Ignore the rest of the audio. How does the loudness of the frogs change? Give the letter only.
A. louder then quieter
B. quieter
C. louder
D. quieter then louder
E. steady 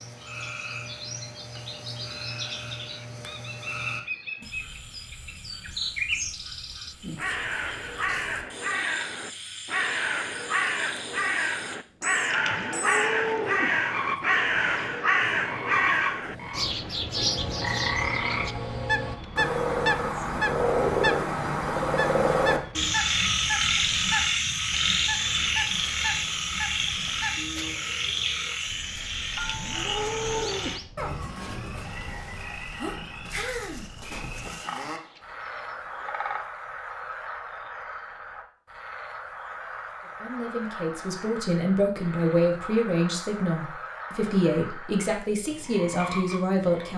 A.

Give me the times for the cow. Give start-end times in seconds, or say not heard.
12.3-13.8, 29.3-30.8.